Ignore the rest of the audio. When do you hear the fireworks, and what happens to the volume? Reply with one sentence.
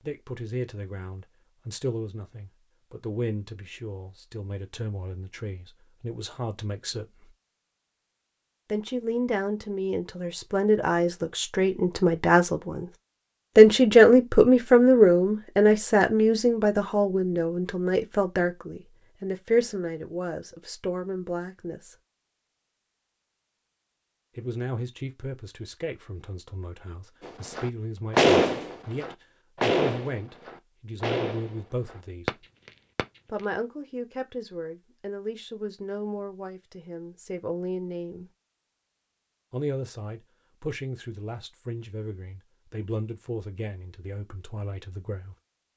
You can hear the fireworks from 27.2 to 33.5 s, getting quieter.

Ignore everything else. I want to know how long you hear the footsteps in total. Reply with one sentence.
The footsteps can't be heard in this clip.